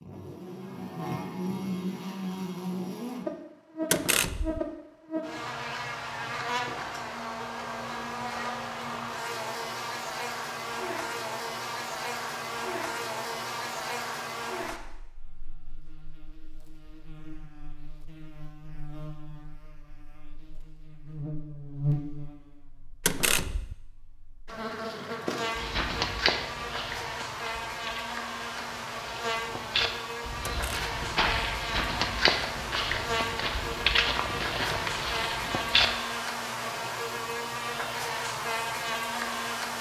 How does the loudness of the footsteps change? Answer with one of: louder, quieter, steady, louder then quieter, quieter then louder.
quieter then louder.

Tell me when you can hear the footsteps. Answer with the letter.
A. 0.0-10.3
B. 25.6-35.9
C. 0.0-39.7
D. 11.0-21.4
B.